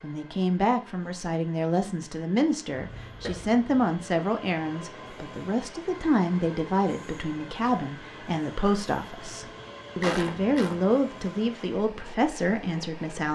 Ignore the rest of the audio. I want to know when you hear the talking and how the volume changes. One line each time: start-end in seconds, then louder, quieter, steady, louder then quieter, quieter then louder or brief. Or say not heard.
0.0-13.3 steady.